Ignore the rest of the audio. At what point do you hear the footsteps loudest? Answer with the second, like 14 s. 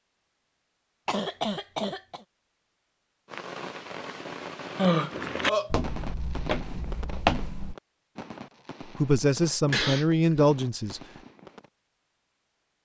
7 s.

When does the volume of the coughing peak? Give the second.
5 s.